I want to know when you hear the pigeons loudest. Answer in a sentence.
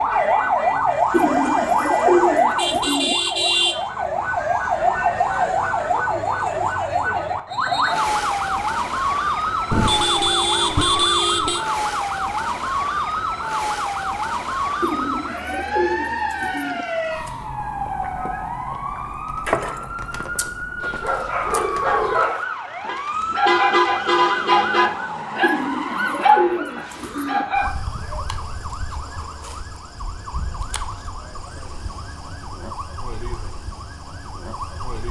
The volume of the pigeons peaks at 2 seconds.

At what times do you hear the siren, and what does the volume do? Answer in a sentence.
The siren can be heard from 0.0 to 35.0 s, getting quieter.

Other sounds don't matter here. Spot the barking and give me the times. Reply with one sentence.
You can hear the barking from 20.8 to 27.7 s.